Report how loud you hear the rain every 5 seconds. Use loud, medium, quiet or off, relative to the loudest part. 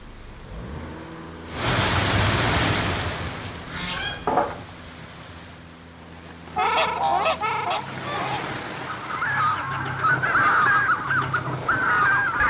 loud, medium, quiet.